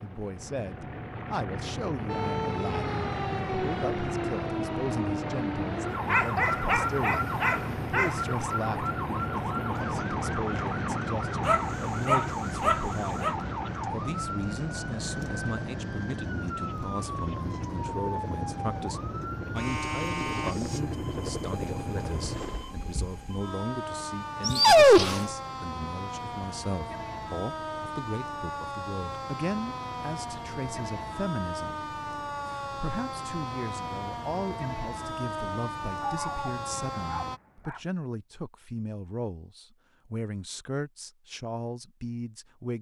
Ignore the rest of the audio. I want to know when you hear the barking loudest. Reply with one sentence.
The loudest moment of the barking is at 25 seconds.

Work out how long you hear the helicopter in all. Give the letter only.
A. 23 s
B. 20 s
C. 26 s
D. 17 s
A.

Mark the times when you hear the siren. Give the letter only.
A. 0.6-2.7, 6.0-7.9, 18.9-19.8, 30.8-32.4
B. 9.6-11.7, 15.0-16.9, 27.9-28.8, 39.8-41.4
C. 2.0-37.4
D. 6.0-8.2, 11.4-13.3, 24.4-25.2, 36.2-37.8
C.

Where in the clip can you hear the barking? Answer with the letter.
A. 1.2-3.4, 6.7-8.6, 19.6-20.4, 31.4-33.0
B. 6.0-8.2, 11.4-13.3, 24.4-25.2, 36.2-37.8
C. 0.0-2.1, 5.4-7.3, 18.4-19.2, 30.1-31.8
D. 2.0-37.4
B.